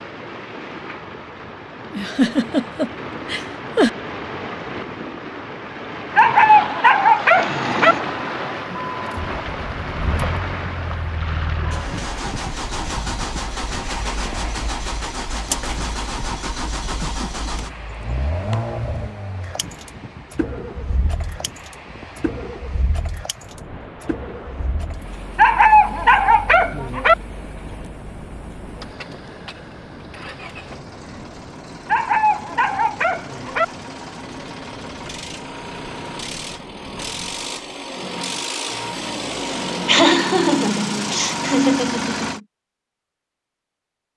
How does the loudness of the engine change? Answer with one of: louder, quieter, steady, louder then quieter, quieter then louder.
quieter then louder.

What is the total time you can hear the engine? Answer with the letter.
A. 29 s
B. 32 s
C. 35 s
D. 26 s
C.